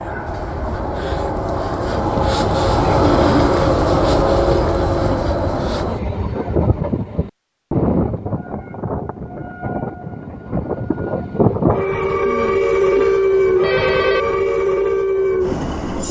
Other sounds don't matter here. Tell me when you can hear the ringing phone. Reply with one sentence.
The ringing phone can be heard from 12.2 to 14.2 s.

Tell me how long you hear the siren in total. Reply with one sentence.
The siren can't be heard in this clip.